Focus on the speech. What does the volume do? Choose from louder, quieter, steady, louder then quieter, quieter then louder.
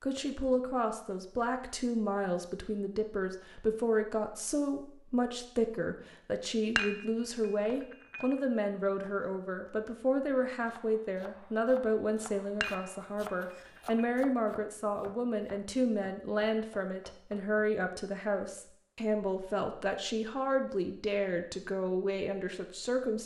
steady.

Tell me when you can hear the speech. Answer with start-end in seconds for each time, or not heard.
0.0-23.2.